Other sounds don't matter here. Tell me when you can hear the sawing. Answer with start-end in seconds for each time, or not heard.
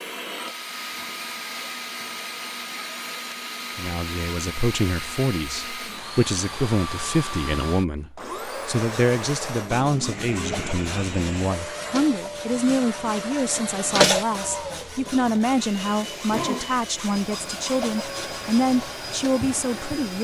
8.7-19.3.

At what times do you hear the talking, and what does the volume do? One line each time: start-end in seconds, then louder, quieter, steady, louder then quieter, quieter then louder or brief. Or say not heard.
3.8-20.2 steady.